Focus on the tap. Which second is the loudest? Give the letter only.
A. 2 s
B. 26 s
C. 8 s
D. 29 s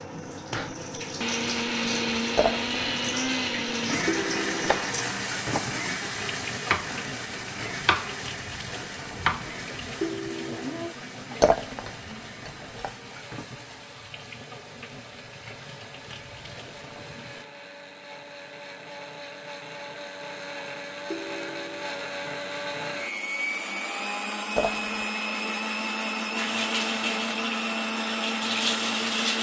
D.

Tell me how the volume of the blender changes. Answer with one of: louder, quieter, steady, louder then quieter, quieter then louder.
quieter then louder.